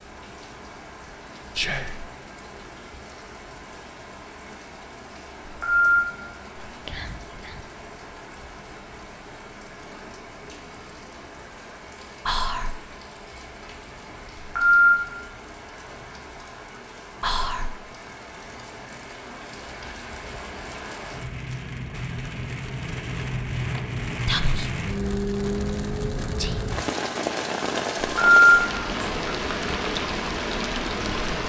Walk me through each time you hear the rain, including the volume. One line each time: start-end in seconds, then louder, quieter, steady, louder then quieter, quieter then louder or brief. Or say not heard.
0.0-31.4 louder.